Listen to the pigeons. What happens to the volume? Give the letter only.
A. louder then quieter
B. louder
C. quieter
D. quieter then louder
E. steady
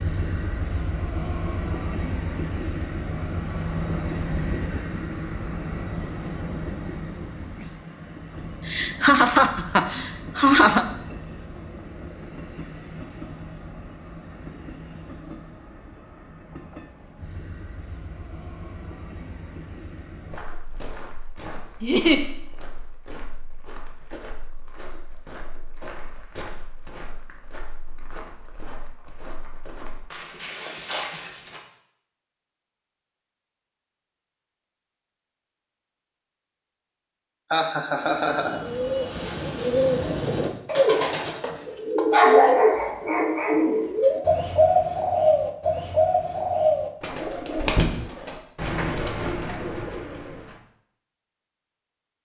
A.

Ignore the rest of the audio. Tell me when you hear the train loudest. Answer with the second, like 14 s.
4 s.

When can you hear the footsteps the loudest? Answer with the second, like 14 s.
31 s.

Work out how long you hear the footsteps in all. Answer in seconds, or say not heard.
11 s.